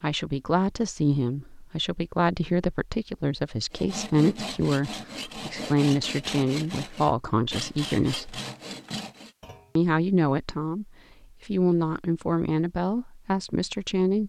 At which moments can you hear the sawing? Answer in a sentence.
The sawing can be heard from 3.7 to 9.3 s.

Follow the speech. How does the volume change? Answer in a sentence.
The loudness of the speech stays about the same.